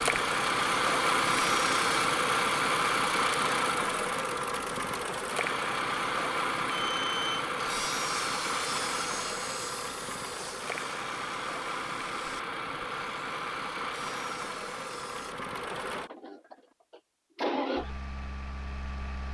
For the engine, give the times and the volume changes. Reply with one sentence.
The engine can be heard from 0.0 to 19.3 s, getting quieter.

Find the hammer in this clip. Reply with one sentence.
You can't hear the hammer here.